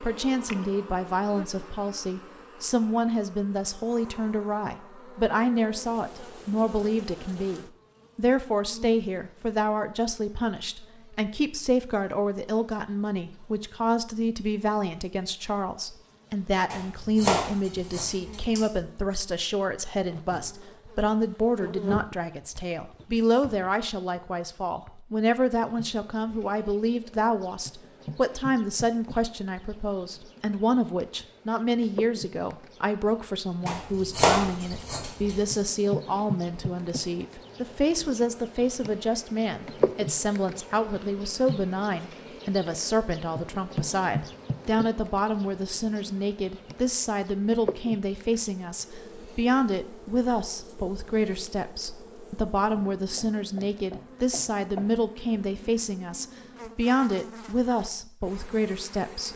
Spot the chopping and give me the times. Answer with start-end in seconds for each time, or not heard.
16.7-18.6, 33.6-35.5.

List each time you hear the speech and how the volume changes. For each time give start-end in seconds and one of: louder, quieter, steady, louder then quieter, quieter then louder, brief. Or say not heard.
0.0-59.3 steady.